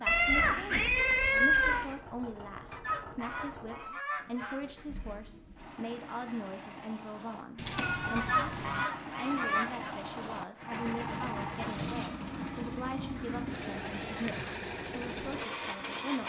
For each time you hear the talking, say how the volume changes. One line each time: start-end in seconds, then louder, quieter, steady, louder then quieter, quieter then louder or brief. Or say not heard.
0.0-16.2 steady.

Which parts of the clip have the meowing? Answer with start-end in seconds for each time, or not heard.
0.1-1.9, 7.5-8.8, 13.2-14.6.